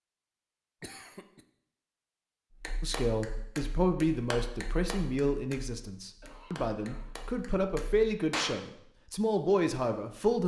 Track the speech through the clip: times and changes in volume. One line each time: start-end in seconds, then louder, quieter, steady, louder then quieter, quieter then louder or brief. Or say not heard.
2.8-10.4 quieter then louder.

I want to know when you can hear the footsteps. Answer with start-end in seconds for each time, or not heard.
not heard.